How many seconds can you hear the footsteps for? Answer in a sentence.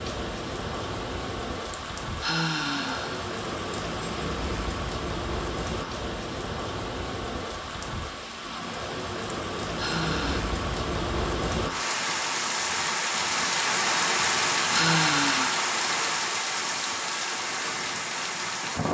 You can't hear the footsteps here.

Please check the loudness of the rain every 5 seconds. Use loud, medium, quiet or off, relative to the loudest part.
medium, medium, loud, loud.